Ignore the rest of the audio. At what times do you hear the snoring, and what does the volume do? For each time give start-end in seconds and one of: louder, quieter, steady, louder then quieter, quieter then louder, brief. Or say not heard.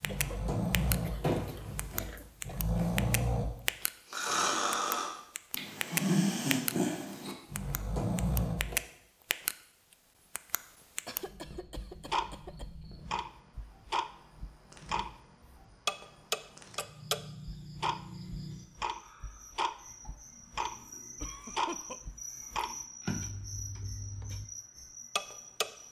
0.0-8.8 steady.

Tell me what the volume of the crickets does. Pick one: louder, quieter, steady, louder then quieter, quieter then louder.
louder.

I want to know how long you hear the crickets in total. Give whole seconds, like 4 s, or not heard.
15 s.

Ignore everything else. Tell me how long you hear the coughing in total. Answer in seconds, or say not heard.
5 s.